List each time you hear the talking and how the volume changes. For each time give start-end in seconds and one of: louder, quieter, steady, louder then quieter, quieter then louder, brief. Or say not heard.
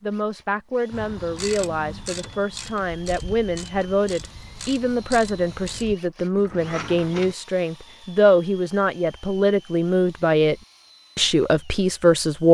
0.0-10.6 louder
11.2-12.5 brief.